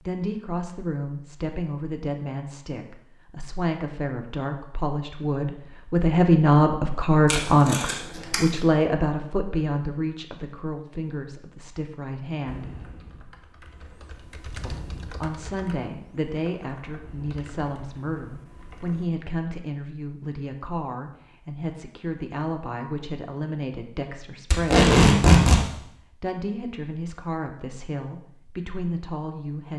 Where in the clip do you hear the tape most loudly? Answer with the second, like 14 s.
25 s.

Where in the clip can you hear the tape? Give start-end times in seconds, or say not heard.
7.2-8.4, 24.5-25.6.